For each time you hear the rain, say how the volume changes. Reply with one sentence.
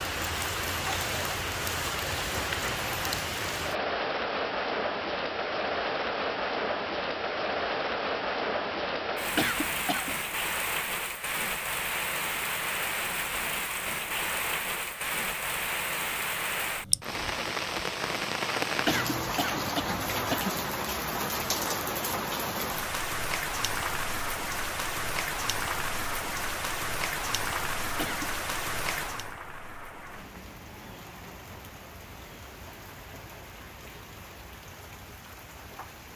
The rain can be heard from 0.0 to 36.1 s, getting quieter.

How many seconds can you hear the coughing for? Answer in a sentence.
The coughing can be heard for 3 seconds in total.